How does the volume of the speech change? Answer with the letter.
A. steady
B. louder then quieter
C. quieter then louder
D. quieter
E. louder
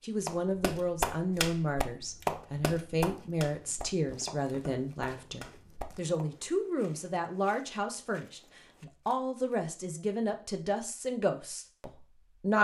A.